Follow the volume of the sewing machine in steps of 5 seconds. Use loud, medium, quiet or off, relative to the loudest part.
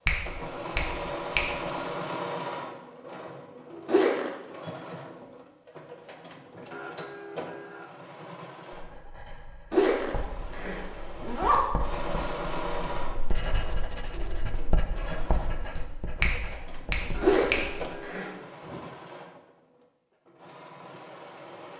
loud, medium, loud, medium, medium.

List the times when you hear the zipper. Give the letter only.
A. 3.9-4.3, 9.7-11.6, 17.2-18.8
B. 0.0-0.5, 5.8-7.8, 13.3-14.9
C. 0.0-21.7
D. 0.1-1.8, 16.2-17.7
A.